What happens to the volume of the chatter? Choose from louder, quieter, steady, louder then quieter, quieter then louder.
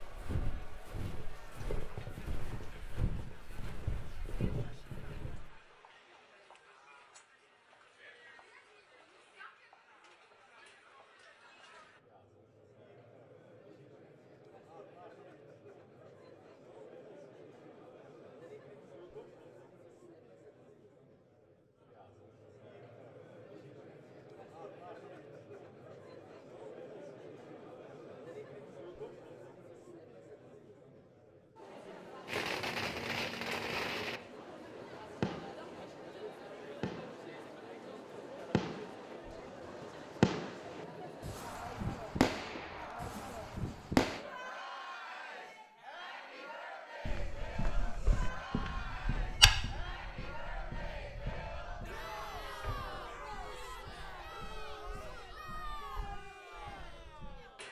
louder.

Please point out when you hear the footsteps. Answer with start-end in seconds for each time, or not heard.
0.0-5.5, 47.0-57.4.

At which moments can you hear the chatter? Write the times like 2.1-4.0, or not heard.
0.0-57.6.